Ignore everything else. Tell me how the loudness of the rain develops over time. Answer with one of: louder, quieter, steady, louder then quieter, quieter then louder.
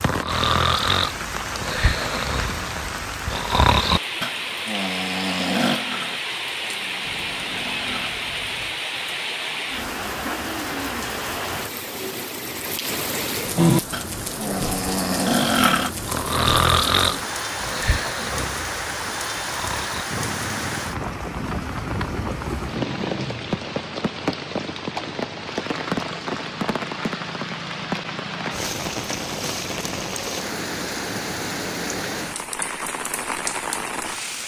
steady.